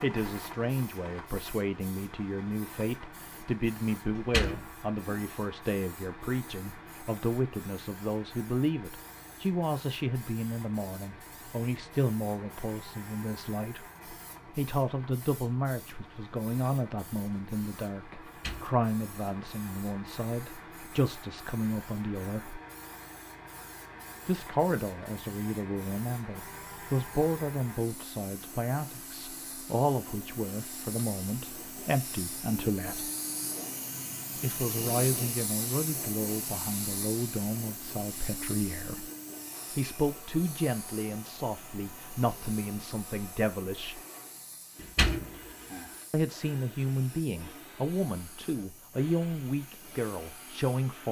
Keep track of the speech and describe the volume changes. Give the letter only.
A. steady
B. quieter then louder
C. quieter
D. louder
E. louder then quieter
A.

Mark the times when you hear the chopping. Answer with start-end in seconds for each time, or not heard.
not heard.